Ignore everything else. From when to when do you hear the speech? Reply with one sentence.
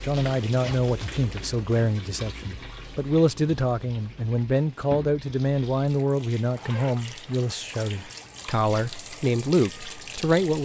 You can hear the speech from 0.0 to 10.5 s.